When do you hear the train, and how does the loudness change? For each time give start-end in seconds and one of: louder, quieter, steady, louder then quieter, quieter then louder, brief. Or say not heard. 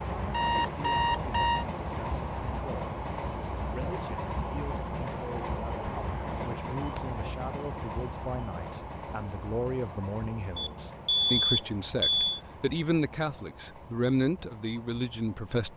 0.0-15.7 quieter.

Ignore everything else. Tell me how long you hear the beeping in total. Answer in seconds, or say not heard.
3 s.